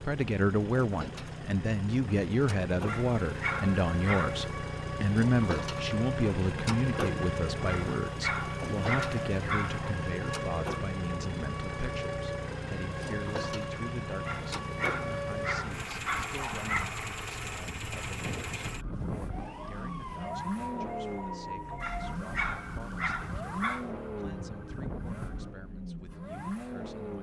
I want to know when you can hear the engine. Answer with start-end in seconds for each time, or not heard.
0.0-27.1.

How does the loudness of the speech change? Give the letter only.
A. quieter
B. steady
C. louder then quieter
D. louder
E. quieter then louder
A.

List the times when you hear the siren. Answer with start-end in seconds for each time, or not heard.
3.1-25.6.